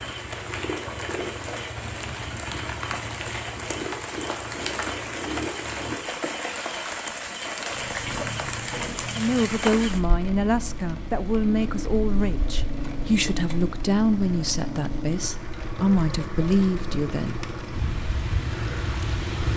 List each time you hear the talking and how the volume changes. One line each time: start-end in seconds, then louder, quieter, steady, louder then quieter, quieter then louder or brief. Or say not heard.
9.2-17.4 steady.